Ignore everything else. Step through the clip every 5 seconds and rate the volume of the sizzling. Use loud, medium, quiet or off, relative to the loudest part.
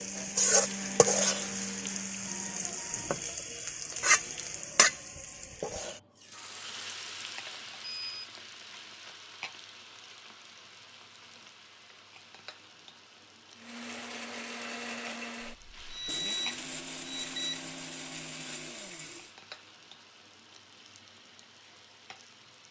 loud, quiet, quiet, quiet, quiet.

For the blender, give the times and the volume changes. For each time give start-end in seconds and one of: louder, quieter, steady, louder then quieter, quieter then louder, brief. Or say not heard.
0.0-2.5 brief
13.6-19.4 steady.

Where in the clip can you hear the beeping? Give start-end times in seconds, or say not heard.
2.2-3.3, 7.8-8.3, 15.8-17.6.